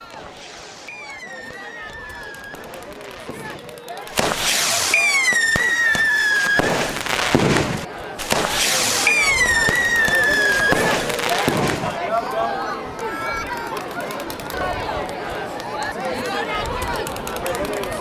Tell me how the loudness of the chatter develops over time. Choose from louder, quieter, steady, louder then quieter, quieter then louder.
louder.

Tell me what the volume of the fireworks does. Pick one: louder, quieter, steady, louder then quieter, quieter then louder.
louder.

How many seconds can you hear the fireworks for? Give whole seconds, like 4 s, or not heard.
12 s.